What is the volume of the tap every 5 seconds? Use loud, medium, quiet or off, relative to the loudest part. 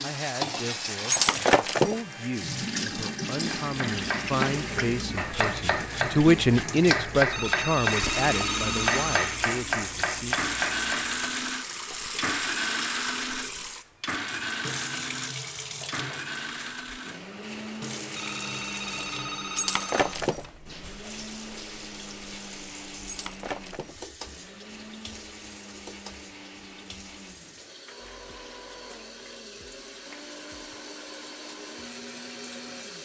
loud, loud, loud, medium, quiet, quiet, medium.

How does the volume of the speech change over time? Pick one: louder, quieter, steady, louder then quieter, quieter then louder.
louder then quieter.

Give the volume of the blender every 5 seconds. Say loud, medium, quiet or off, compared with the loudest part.
medium, medium, loud, medium, quiet, quiet, quiet.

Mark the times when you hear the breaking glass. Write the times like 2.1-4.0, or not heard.
1.1-2.0, 19.6-20.4, 23.1-23.9.